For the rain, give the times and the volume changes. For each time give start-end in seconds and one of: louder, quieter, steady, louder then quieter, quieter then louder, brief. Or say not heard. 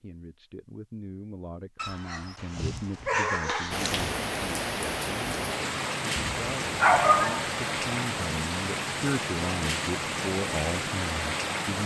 3.7-11.8 steady.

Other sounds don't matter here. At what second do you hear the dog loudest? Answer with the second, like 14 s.
7 s.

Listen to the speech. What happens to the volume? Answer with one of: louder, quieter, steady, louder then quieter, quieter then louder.
louder.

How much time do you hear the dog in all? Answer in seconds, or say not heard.
4 s.